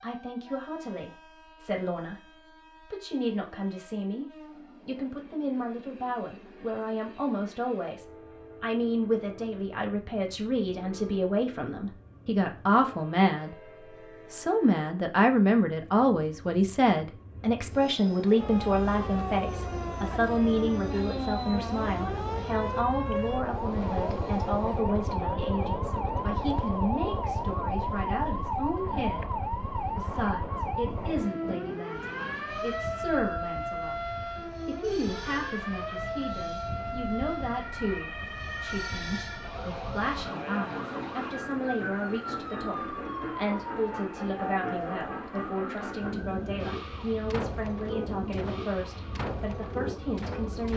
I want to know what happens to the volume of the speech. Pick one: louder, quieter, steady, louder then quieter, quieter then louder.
louder then quieter.